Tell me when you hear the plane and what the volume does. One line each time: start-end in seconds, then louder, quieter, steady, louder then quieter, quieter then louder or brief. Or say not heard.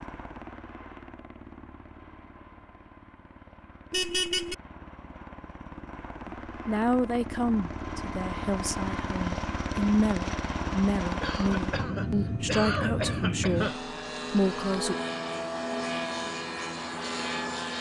0.0-17.7 louder.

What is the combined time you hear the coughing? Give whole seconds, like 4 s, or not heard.
3 s.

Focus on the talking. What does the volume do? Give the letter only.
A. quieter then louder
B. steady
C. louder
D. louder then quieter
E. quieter
B.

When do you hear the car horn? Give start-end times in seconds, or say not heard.
3.9-4.5.